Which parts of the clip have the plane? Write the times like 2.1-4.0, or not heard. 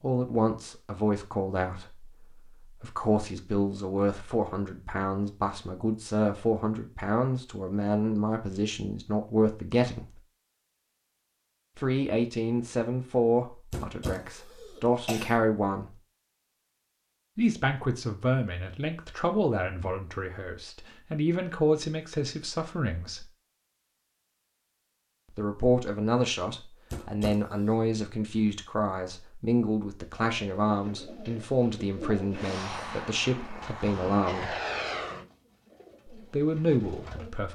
32.3-35.3.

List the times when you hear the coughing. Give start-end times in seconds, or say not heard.
13.7-15.3, 26.9-27.8.